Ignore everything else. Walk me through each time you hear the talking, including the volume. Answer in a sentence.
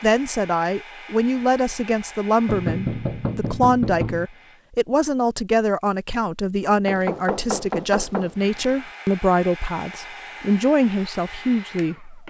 The talking can be heard from 0.0 to 12.2 s, at a steady volume.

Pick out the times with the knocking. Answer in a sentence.
You can hear the knocking from 2.5 to 4.3 s and from 6.8 to 8.7 s.